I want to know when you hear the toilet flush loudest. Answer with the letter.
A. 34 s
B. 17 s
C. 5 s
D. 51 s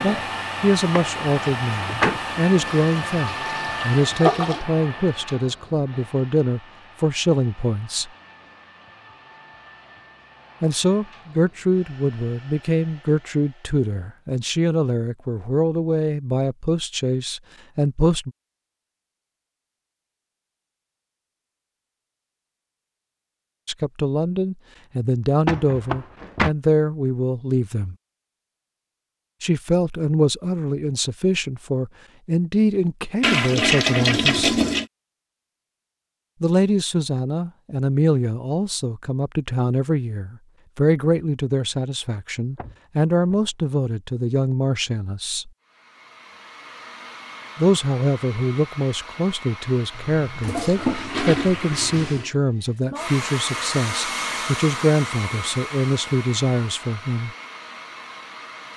A.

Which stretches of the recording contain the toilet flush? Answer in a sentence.
You can hear the toilet flush from 2.6 to 4.7 s, from 33.2 to 34.9 s and from 49.9 to 52.4 s.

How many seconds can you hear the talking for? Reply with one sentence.
The talking can be heard for 44 seconds in total.